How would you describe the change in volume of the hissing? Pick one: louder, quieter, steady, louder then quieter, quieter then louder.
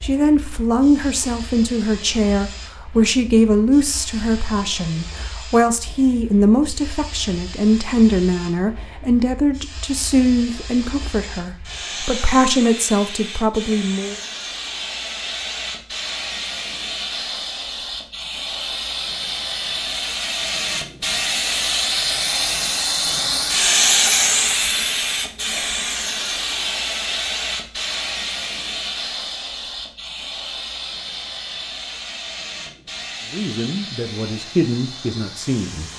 louder then quieter.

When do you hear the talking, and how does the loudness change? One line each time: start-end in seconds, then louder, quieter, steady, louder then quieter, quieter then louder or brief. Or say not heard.
0.0-14.2 steady
33.3-35.9 brief.